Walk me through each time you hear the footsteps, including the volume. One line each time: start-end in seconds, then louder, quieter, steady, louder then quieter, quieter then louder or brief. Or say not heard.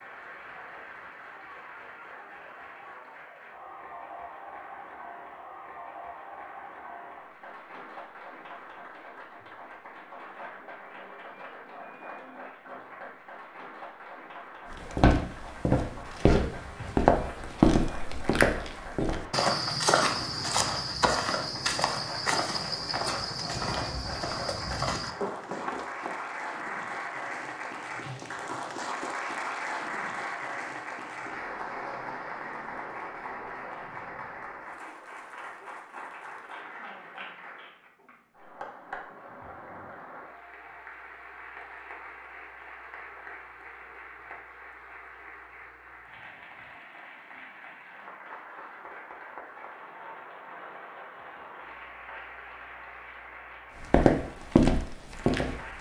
14.7-26.1 quieter
53.8-55.6 brief.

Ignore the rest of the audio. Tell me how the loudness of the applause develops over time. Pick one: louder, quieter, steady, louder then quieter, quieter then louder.
louder then quieter.